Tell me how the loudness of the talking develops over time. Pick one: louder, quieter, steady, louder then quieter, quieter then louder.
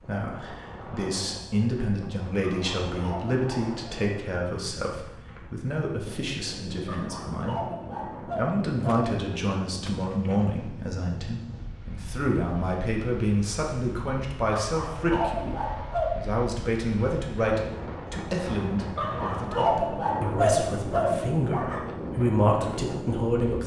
steady.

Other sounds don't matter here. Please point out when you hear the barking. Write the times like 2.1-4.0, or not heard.
2.4-3.8, 6.8-9.1, 14.5-16.1, 18.9-21.8.